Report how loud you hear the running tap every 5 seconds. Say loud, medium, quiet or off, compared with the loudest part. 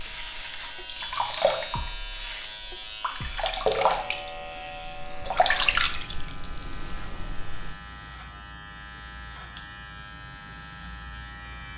loud, loud, off.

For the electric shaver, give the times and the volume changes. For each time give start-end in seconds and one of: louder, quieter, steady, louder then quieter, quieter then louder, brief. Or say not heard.
0.0-11.7 quieter.